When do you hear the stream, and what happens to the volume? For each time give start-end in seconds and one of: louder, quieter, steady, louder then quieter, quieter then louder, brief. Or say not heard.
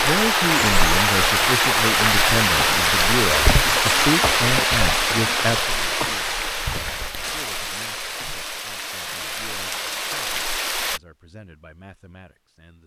0.0-11.0 quieter.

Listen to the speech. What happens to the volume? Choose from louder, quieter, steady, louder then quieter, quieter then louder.
quieter.